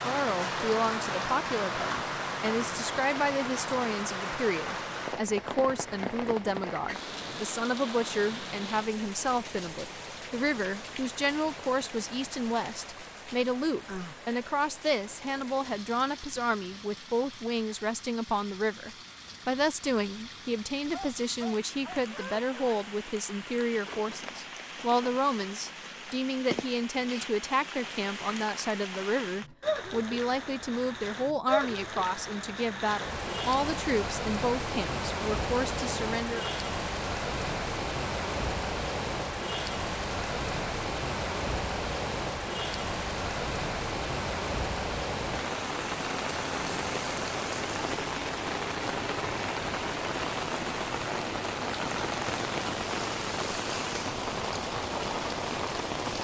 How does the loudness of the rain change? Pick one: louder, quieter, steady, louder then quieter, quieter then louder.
quieter then louder.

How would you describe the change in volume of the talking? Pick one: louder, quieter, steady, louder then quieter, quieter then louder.
steady.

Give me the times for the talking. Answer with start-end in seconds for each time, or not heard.
0.0-36.5.